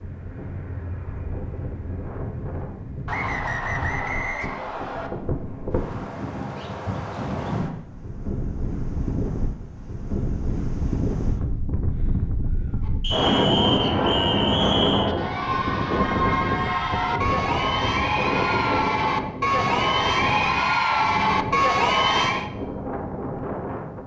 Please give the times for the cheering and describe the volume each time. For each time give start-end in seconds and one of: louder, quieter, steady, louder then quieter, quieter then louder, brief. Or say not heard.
12.8-22.5 louder.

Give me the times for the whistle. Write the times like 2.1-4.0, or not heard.
3.0-5.1, 13.0-15.1.